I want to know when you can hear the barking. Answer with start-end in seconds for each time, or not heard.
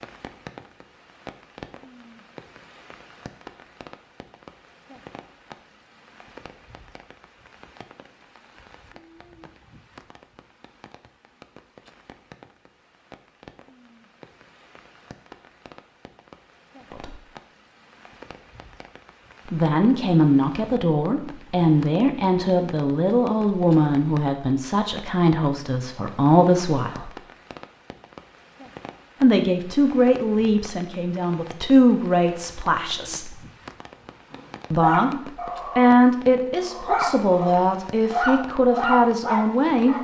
34.3-40.0.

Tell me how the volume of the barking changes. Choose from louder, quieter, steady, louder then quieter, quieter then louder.
quieter then louder.